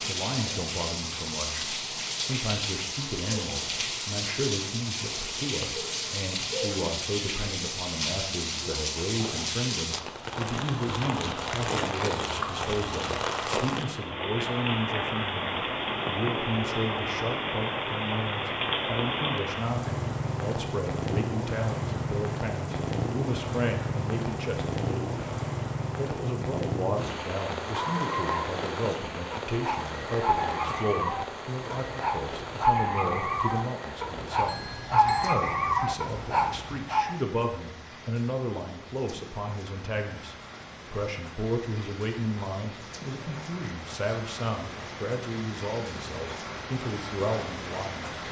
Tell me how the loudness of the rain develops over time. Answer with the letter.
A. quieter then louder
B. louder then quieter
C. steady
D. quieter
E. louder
D.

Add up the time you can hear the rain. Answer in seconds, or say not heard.
48 s.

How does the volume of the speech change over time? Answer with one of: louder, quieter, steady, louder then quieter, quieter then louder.
steady.